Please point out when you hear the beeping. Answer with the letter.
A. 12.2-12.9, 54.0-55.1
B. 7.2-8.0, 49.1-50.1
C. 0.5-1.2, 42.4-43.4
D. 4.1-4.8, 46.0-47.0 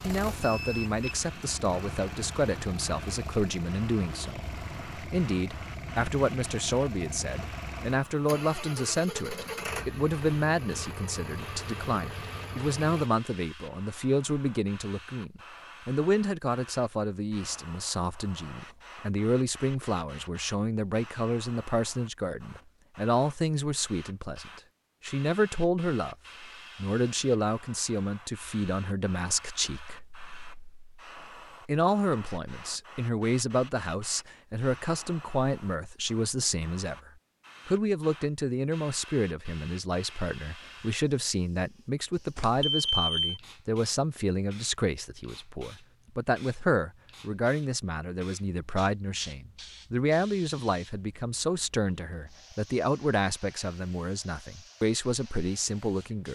C.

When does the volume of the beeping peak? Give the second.
43 s.